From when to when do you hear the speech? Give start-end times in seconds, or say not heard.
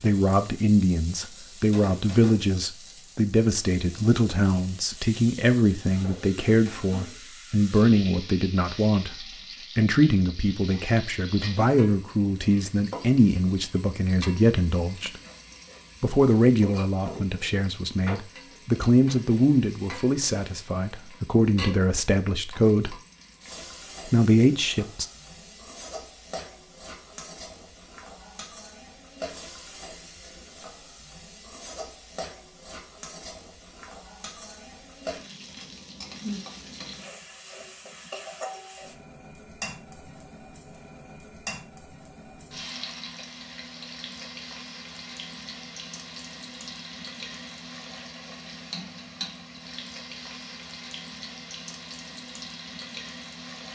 0.0-15.2, 16.0-22.9, 24.1-25.1.